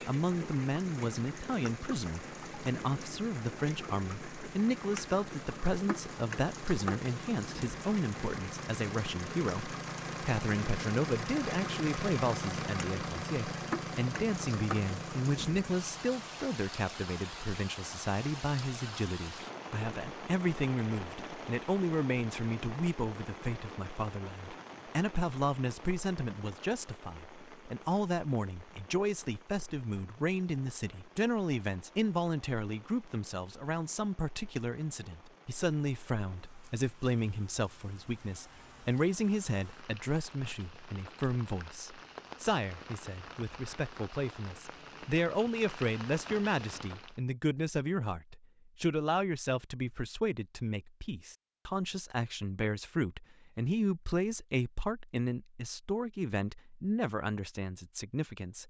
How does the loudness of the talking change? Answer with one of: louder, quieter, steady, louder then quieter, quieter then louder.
steady.